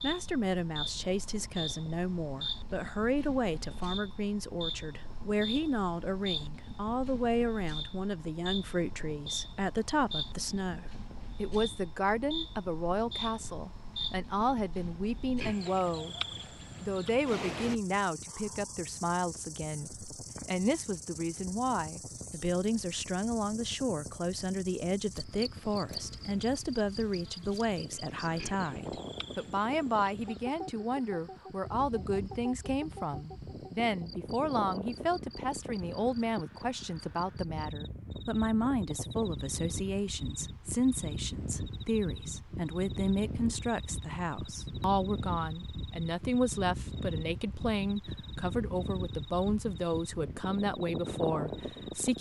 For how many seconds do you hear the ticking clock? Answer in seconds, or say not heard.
not heard.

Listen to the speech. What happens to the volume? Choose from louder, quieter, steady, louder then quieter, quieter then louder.
steady.